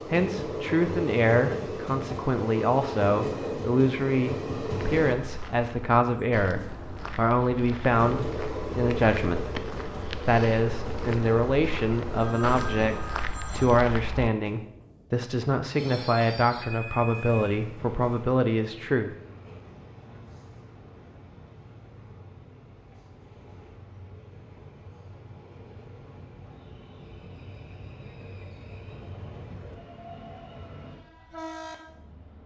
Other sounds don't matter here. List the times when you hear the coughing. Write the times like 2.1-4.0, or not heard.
not heard.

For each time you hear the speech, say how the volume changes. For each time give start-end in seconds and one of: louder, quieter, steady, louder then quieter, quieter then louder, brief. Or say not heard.
0.1-19.1 steady.